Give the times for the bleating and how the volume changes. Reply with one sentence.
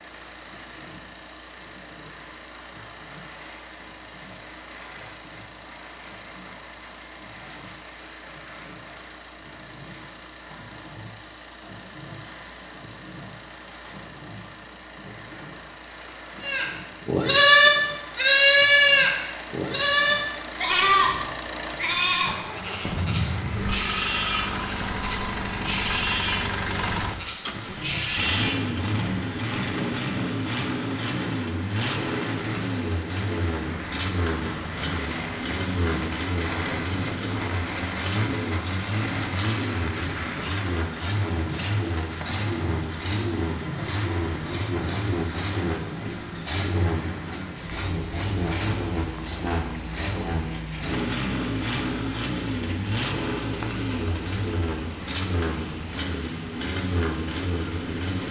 The bleating can be heard from 16.4 to 28.8 s, getting quieter.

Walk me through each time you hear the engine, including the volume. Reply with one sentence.
You can hear the engine from 0.0 to 58.2 s, getting louder.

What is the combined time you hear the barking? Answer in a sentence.
You can't hear the barking here.